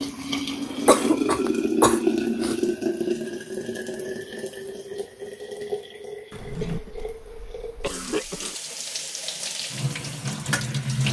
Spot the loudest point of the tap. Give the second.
2 s.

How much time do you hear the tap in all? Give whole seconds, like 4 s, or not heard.
11 s.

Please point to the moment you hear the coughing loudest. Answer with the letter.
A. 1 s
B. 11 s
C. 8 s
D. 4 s
A.